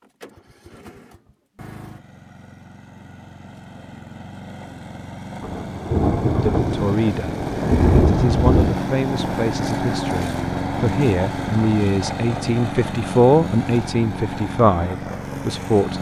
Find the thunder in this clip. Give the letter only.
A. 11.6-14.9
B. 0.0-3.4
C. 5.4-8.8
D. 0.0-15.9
C.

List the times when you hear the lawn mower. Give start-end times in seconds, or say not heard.
0.0-15.9.